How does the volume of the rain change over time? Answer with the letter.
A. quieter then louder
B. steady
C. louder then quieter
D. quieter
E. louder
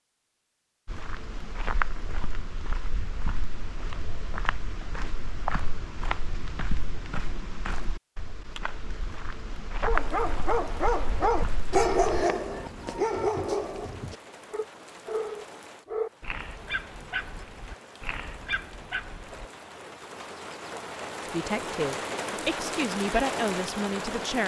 E.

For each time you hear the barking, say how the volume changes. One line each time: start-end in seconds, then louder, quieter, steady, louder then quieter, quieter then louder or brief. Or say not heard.
9.7-19.4 quieter.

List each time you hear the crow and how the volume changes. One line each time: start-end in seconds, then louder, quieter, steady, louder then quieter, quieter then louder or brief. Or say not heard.
not heard.